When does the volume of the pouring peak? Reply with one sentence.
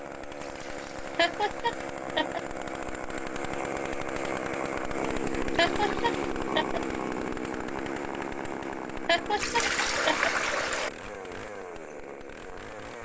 The volume of the pouring peaks at 10 seconds.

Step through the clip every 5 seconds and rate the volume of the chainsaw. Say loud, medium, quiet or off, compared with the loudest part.
loud, loud, medium.